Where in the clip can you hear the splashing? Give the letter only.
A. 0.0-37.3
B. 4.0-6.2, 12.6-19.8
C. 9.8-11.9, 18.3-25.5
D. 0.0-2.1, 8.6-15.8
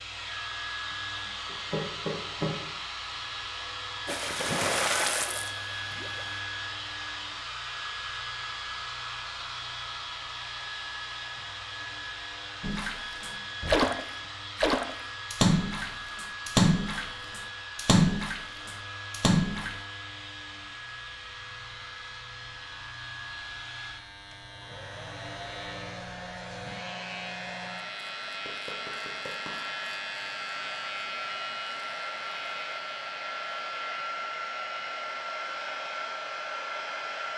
B.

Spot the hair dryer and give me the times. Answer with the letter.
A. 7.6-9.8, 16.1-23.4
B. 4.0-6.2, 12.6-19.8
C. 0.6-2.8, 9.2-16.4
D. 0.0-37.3
D.